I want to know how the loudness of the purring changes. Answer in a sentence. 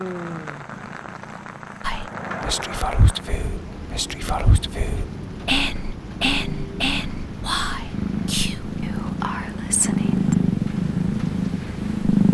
The volume of the purring goes up.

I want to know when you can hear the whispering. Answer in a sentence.
The whispering can be heard from 1.8 to 10.3 s.